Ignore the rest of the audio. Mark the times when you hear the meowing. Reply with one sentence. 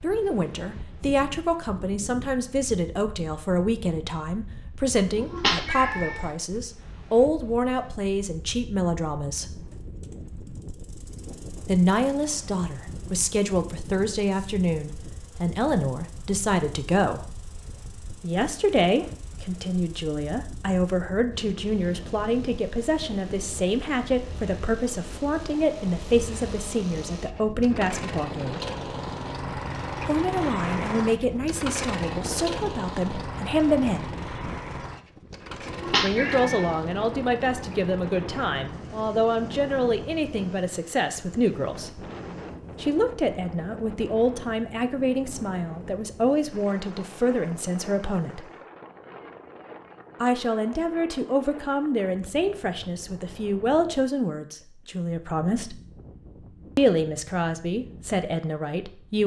The meowing can be heard from 5.2 to 6.2 s and from 35.6 to 36.8 s.